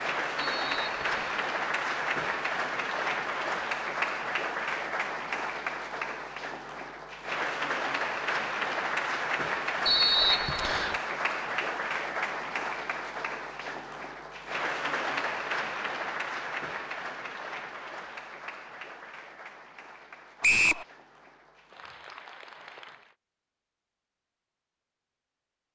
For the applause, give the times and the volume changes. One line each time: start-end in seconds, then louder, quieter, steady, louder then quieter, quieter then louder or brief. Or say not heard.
0.0-23.1 quieter.